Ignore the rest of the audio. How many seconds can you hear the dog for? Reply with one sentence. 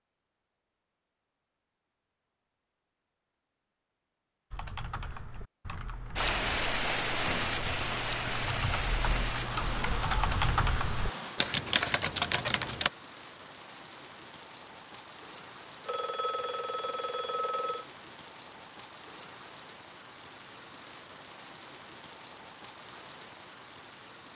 The dog can't be heard in this clip.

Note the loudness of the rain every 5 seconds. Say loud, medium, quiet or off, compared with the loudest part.
off, loud, medium, quiet, quiet.